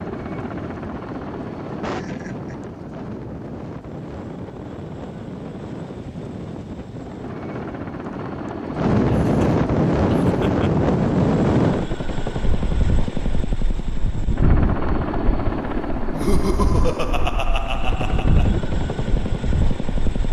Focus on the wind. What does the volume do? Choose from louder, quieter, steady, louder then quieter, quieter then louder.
louder then quieter.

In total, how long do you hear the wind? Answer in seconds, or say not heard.
20 s.